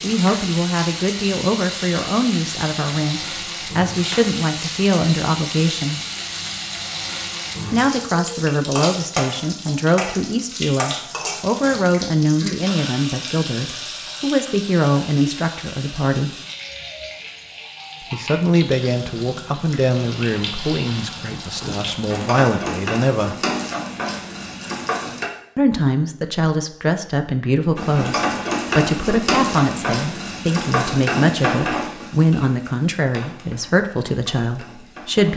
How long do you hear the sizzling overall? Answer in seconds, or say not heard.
33 s.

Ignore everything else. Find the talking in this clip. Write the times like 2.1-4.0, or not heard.
0.0-6.0, 7.7-16.4, 18.0-23.4, 25.6-35.3.